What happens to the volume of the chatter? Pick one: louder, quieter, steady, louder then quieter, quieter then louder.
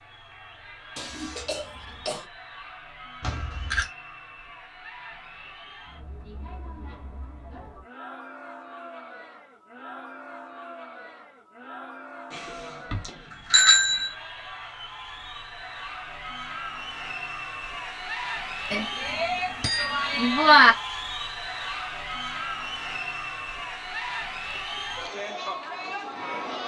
louder.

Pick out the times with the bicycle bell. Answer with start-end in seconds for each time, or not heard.
3.2-3.9, 12.3-14.1, 18.7-20.7.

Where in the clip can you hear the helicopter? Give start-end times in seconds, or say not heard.
not heard.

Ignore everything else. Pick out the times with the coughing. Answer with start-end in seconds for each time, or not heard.
0.9-2.2.